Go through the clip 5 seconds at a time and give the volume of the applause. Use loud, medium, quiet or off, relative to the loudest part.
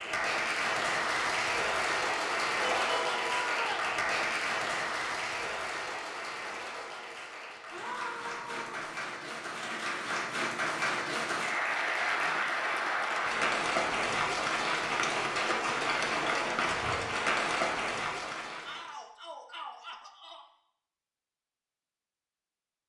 loud, medium, loud, loud, off.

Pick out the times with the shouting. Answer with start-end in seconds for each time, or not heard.
2.6-4.0, 7.7-8.9, 18.6-20.4.